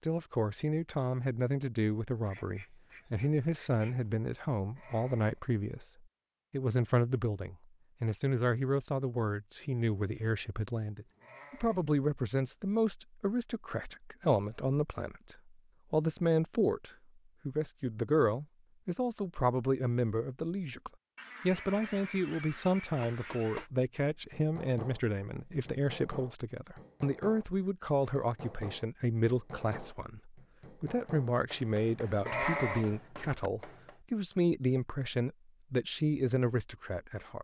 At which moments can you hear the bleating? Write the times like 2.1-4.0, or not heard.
4.7-5.4, 11.1-11.9, 21.4-22.1, 32.1-33.0.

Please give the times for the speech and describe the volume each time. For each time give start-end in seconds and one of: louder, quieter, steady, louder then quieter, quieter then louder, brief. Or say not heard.
0.0-5.9 steady
6.5-37.3 steady.